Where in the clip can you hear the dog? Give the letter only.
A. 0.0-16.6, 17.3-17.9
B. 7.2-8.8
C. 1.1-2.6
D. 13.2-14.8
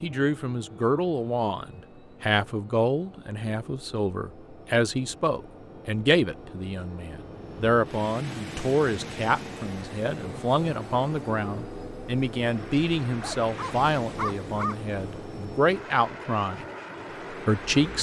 D.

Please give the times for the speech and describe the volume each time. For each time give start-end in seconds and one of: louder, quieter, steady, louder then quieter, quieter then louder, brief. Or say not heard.
0.0-16.6 steady
17.3-17.9 brief.